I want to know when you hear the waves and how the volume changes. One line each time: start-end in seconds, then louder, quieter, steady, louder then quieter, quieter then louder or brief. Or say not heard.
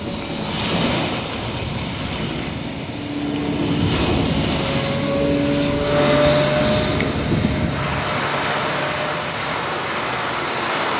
0.0-10.9 steady.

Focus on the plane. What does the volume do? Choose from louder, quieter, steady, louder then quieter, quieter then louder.
louder then quieter.